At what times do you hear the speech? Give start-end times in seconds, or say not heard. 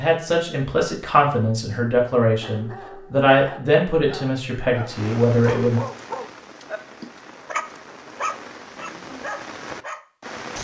0.0-5.8.